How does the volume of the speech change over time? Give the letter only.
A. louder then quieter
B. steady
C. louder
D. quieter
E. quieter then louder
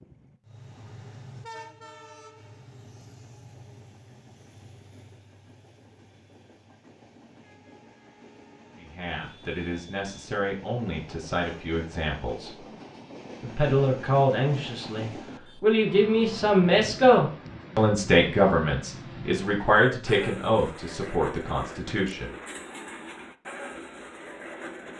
A.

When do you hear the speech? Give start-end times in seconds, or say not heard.
8.8-12.7, 13.4-22.3.